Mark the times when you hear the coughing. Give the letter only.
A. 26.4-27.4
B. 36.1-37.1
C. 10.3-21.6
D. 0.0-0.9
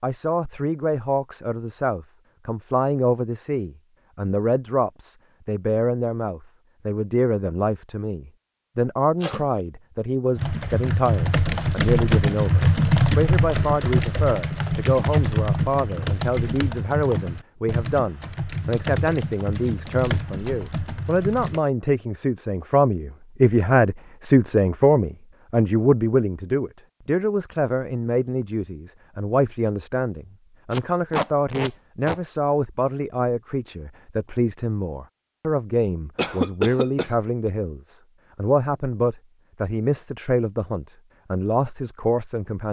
B.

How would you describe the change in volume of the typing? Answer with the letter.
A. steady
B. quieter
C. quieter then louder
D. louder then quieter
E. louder
B.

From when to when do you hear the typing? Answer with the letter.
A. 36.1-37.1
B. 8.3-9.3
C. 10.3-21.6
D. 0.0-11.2
C.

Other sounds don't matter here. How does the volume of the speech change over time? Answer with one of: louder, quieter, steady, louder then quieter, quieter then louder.
steady.